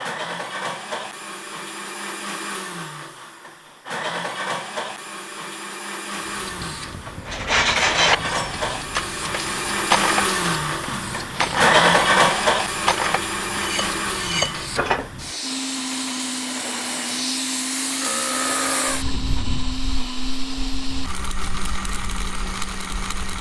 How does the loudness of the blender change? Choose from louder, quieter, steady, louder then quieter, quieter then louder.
louder then quieter.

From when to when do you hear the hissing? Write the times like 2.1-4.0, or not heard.
6.2-23.3.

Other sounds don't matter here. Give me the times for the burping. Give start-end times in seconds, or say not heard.
18.0-19.1.